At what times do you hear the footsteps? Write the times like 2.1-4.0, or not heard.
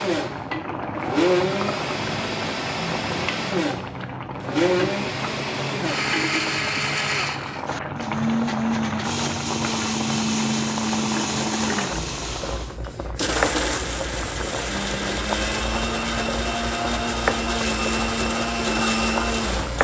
not heard.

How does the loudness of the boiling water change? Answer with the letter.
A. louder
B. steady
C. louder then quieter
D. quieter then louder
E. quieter
B.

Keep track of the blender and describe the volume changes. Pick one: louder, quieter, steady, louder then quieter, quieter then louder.
steady.